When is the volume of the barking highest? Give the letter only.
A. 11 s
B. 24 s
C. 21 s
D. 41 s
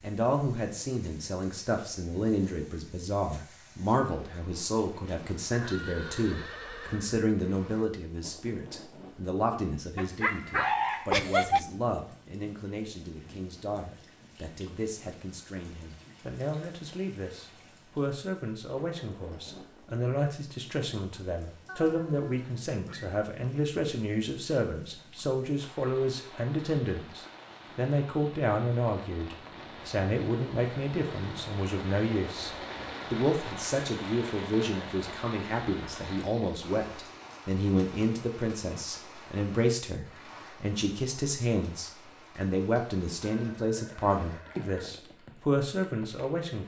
A.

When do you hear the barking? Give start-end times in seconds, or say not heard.
9.9-11.7.